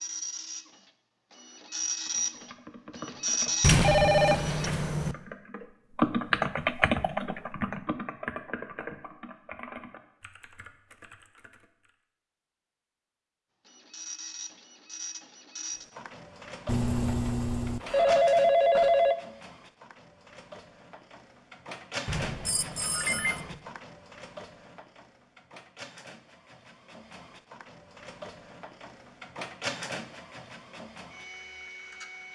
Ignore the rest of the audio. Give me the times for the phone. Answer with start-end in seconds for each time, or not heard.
3.8-4.4, 16.6-19.1, 22.4-23.4.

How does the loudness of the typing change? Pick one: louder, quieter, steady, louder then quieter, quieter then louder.
louder then quieter.